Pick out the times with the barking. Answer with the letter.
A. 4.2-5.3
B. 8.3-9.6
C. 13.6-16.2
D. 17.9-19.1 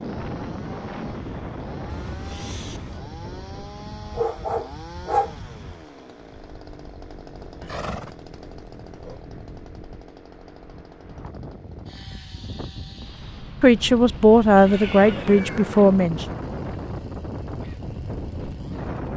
A.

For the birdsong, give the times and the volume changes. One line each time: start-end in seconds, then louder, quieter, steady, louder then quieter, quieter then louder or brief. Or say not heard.
not heard.